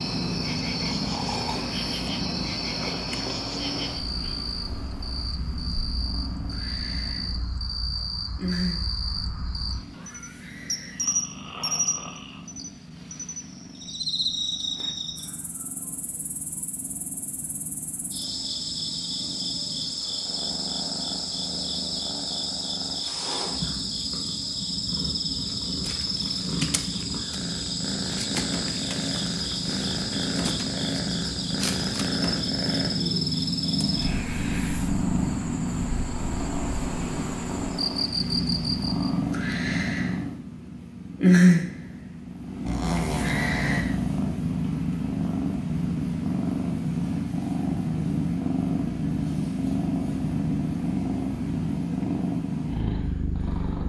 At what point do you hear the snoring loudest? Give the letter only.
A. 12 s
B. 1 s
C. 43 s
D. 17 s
C.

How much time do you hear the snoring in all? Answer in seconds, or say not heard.
4 s.